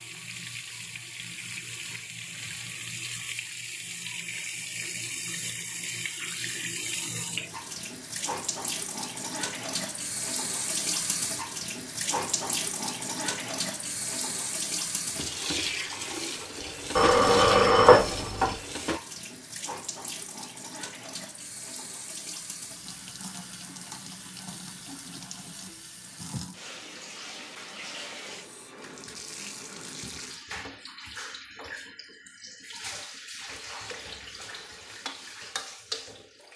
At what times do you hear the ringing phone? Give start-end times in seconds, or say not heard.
16.9-18.6.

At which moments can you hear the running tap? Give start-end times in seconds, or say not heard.
0.0-36.5.